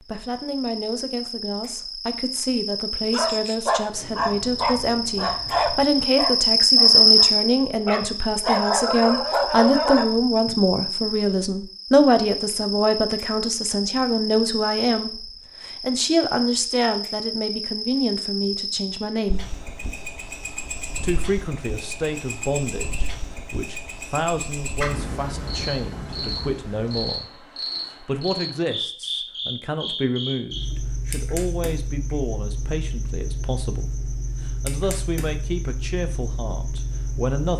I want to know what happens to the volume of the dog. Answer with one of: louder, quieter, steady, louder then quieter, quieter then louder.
quieter then louder.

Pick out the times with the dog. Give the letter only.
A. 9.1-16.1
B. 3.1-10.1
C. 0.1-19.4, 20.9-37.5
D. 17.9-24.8
B.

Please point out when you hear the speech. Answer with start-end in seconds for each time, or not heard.
0.1-19.4, 20.9-37.5.